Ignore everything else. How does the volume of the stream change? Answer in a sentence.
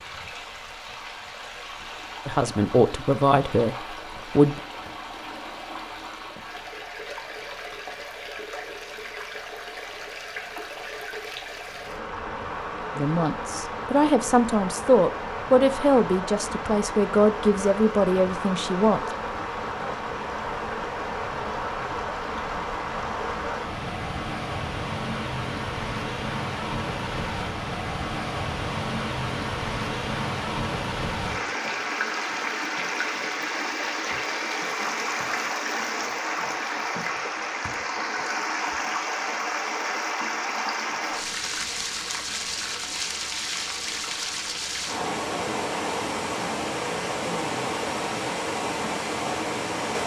The volume of the stream goes up.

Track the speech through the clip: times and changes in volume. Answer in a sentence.
You can hear the speech briefly from 2.2 to 4.6 s; and from 12.9 to 19.1 s, at a steady volume.